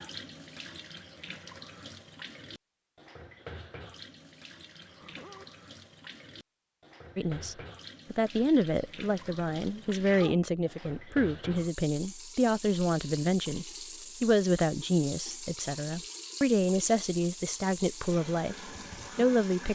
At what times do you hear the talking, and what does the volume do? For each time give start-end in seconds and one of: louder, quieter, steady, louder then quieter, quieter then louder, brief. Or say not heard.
7.2-19.7 steady.